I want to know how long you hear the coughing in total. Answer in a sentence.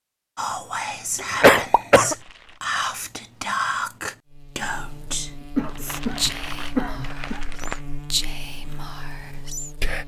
The coughing can be heard for 3 seconds in total.